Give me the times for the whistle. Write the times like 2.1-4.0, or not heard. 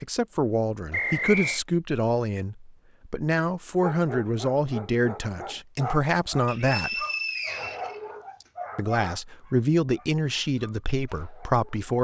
0.9-1.6, 6.5-8.4.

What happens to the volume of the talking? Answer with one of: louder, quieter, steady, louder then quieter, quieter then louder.
steady.